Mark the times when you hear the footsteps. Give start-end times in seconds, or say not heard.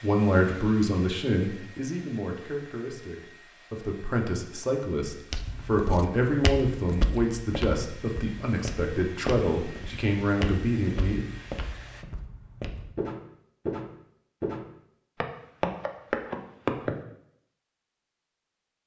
5.3-16.9.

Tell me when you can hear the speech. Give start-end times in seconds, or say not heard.
0.0-11.2.